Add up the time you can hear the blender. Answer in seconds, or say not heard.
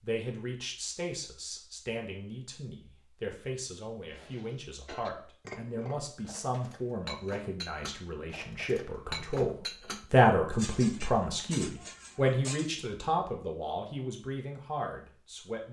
not heard.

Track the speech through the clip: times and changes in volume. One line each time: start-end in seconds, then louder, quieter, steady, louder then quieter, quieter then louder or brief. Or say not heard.
0.0-15.6 louder then quieter.